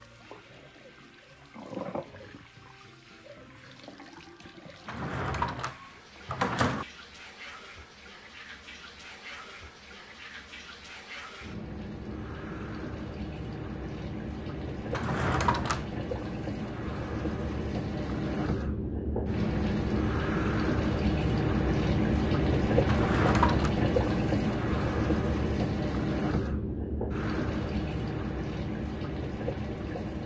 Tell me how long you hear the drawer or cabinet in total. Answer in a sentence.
You can hear the drawer or cabinet for 4 seconds altogether.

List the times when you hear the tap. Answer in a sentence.
You can hear the tap from 0.0 to 30.2 s.